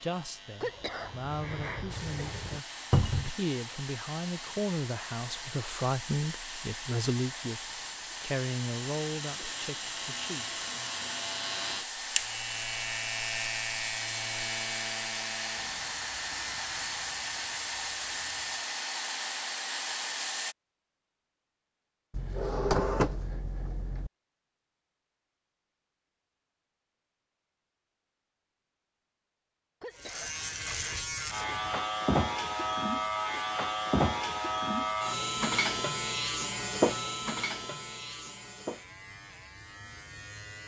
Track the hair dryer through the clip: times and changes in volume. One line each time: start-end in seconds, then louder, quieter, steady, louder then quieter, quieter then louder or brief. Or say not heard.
1.9-20.6 louder.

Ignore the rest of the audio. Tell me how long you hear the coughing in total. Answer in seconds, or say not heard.
4 s.